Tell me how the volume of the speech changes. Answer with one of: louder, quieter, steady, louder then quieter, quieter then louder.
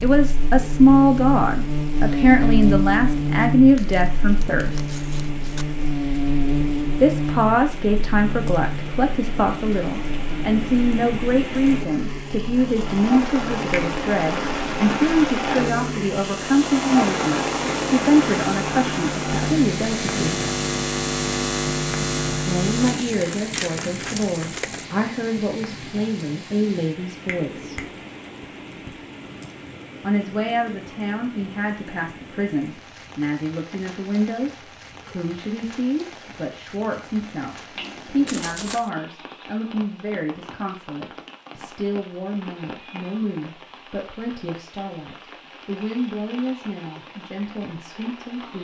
quieter.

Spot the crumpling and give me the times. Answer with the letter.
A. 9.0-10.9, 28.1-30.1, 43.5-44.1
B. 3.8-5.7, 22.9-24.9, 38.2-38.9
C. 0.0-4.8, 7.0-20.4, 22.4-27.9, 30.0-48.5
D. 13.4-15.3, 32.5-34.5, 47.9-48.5
B.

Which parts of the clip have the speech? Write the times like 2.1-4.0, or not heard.
0.0-4.8, 7.0-20.4, 22.4-27.9, 30.0-48.5.